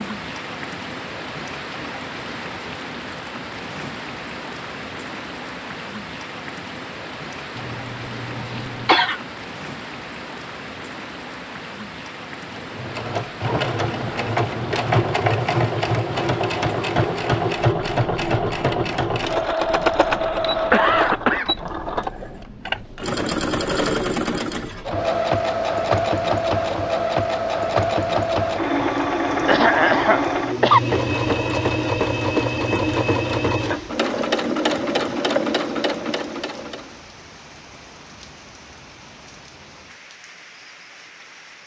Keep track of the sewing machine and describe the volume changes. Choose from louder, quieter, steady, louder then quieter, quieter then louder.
steady.